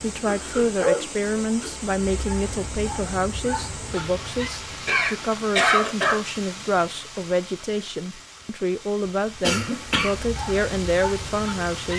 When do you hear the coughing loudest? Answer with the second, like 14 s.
6 s.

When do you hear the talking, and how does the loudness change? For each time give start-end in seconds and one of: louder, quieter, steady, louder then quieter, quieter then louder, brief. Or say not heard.
0.0-11.9 steady.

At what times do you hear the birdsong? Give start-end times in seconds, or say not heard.
not heard.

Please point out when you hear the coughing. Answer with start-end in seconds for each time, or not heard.
0.2-1.8, 4.8-6.2, 9.4-10.2.